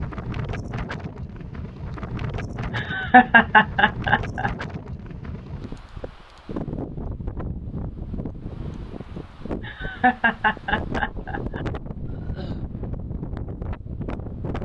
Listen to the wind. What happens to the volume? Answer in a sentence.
The volume of the wind stays about the same.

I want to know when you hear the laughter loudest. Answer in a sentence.
The volume of the laughter peaks at 3 seconds.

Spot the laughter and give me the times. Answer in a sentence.
You can hear the laughter from 2.7 to 4.5 s and from 9.6 to 11.6 s.